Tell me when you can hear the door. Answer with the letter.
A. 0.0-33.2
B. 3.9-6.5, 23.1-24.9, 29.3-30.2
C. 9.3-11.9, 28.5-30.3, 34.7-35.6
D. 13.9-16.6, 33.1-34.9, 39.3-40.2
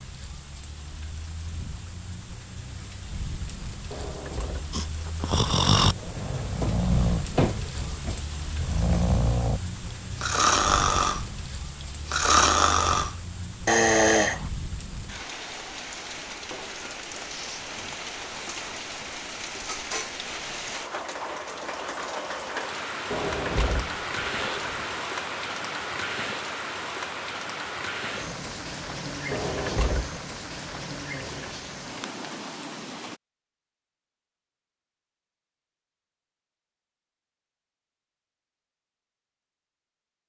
B.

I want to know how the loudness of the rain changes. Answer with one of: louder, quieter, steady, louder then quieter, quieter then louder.
louder.